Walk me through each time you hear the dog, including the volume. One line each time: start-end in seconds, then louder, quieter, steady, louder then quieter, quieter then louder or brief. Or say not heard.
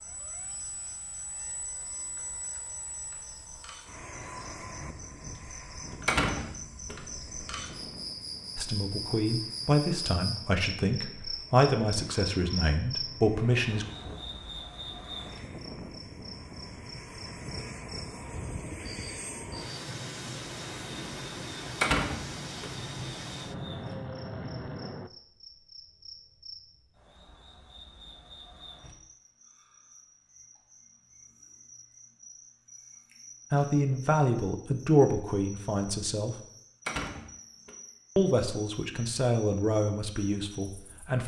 not heard.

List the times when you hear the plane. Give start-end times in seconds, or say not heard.
0.0-25.1.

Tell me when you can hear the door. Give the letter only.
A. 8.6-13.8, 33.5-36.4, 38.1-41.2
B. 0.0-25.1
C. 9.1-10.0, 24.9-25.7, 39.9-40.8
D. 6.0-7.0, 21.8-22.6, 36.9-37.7
D.